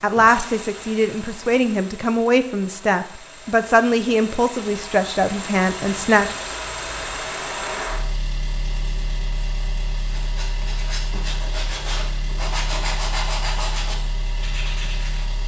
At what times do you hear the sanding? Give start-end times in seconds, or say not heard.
10.1-15.2.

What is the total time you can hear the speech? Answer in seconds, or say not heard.
6 s.